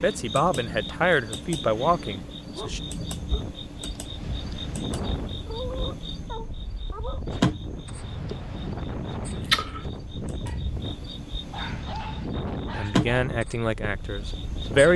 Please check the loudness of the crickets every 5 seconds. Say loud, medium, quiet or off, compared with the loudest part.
medium, loud, loud.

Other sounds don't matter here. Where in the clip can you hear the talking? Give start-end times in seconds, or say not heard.
0.0-2.8, 12.8-14.9.